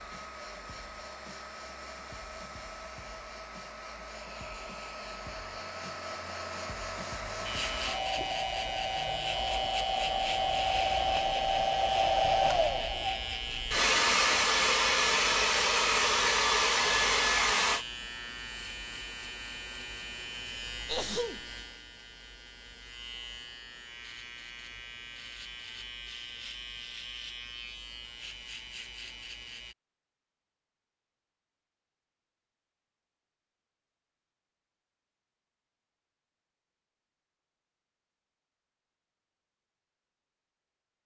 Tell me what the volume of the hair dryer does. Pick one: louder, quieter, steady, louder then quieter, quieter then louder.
louder.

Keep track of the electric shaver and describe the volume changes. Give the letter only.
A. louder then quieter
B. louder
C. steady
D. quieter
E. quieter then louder
D.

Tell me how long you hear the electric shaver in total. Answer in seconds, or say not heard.
22 s.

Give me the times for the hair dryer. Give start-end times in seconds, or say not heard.
0.0-17.9.